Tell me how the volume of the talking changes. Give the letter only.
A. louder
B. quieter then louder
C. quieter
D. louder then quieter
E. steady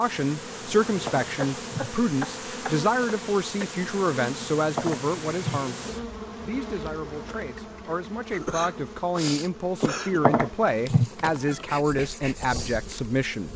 B.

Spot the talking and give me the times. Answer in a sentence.
The talking can be heard from 0.0 to 13.5 s.